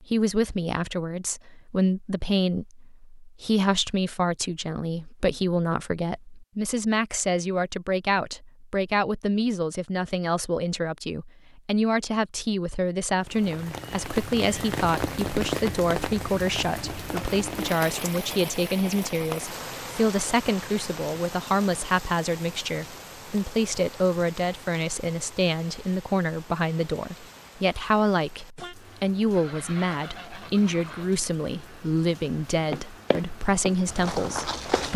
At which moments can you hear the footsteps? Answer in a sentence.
You can hear the footsteps from 32.7 to 34.9 s.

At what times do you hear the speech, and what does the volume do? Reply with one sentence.
The speech can be heard from 0.0 to 34.9 s, at a steady volume.